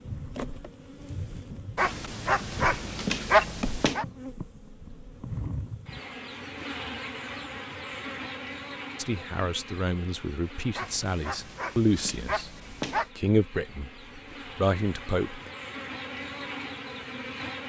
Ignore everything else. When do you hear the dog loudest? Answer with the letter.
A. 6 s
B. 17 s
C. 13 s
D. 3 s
D.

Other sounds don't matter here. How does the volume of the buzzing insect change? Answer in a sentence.
The volume of the buzzing insect goes down, then up.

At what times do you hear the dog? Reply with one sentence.
You can hear the dog from 1.8 to 4.0 s and from 10.8 to 13.1 s.